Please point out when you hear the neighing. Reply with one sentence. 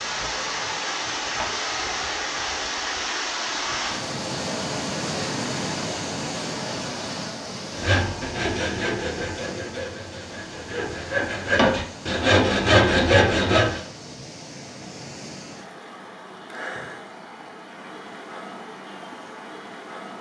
You can't hear the neighing here.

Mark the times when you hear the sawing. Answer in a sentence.
The sawing can be heard from 7.8 to 13.8 s.